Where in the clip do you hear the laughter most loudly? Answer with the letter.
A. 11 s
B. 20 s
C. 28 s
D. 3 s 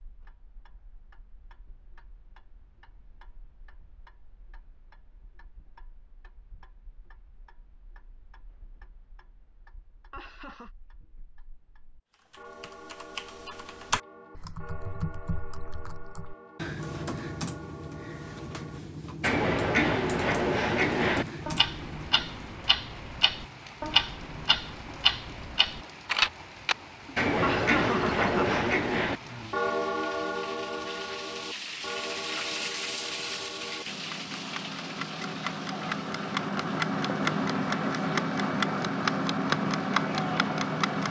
C.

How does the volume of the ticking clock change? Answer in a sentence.
The loudness of the ticking clock goes up.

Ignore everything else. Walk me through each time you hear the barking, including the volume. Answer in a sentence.
The barking can't be heard in this clip.